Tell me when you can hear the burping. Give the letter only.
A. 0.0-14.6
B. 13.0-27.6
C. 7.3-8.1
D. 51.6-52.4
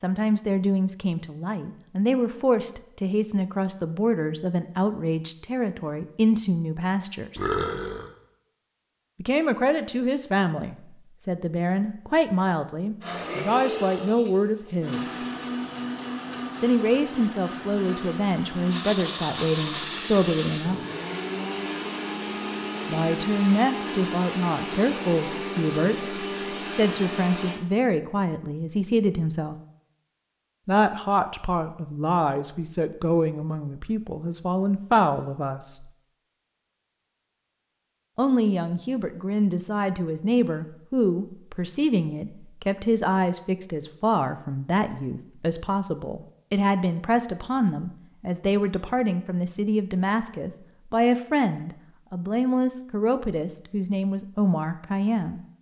C.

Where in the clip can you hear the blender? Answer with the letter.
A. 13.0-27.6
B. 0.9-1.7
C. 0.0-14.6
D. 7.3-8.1
A.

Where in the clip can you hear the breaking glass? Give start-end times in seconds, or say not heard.
not heard.